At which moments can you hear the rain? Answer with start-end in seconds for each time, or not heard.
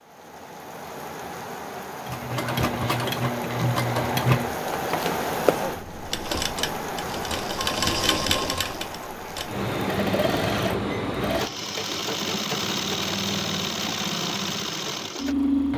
0.0-10.0.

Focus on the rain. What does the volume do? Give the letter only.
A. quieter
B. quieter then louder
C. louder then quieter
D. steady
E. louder
C.